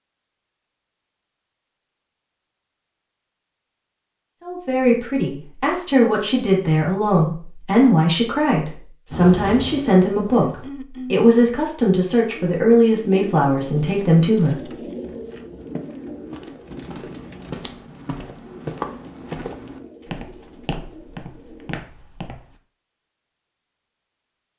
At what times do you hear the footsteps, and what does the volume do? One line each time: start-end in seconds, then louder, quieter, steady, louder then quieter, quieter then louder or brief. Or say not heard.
15.6-22.6 louder then quieter.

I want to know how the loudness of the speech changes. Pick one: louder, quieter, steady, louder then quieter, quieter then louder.
steady.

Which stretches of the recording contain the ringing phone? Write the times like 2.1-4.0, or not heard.
not heard.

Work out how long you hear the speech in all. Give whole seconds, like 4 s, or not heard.
10 s.